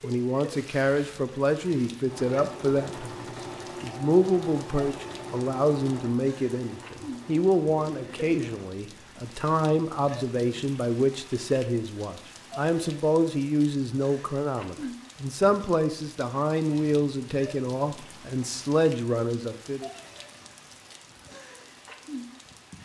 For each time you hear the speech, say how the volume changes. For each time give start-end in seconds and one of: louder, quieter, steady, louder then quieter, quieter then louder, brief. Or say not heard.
0.0-19.9 steady.